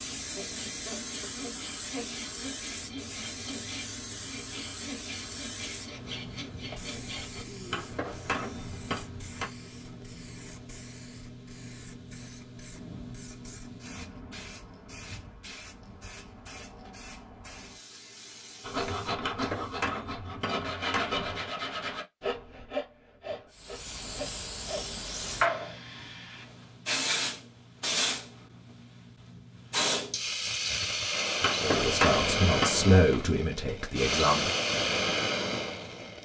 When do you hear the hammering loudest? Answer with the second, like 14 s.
32 s.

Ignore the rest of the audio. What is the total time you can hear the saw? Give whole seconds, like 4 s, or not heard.
15 s.